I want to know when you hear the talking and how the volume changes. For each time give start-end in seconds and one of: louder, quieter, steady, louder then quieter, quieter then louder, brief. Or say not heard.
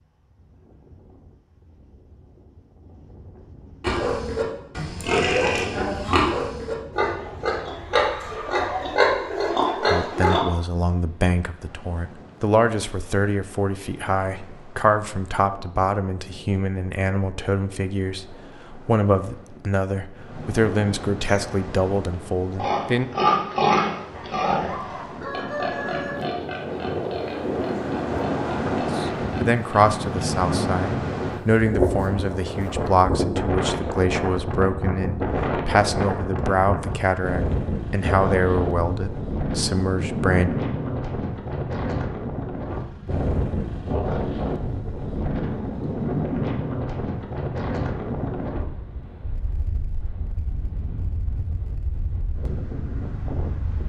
9.8-23.1 steady
28.8-40.5 steady.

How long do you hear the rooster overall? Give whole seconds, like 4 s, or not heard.
2 s.